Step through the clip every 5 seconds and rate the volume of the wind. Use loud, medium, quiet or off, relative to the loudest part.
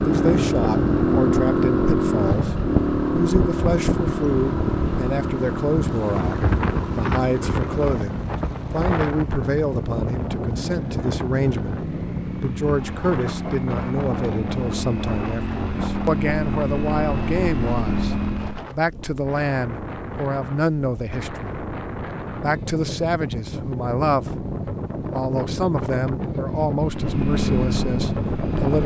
loud, loud, medium, medium, medium, loud.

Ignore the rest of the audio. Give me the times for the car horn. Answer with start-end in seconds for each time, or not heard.
not heard.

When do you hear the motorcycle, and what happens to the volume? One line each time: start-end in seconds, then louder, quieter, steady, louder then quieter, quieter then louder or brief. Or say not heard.
0.0-18.6 quieter then louder
26.8-28.8 brief.